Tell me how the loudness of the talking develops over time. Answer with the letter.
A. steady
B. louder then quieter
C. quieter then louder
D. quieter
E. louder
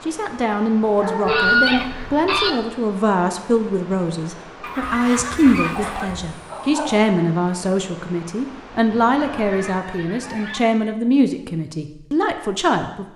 A.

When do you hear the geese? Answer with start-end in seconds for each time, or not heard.
1.2-2.5, 4.6-6.2, 8.9-10.6.